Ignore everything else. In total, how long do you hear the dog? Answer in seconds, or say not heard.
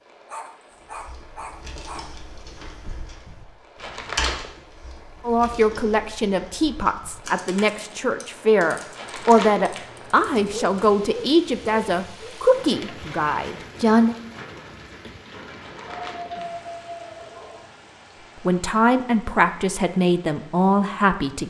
6 s.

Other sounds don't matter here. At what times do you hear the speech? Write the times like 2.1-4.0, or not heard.
5.2-14.2, 18.4-21.4.